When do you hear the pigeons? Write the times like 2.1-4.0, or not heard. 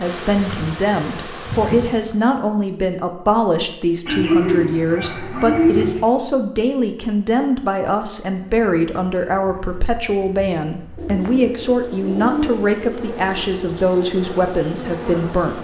4.0-6.0, 10.9-13.3.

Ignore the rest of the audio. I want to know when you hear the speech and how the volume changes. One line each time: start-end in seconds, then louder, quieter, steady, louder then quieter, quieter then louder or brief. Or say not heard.
0.0-15.6 steady.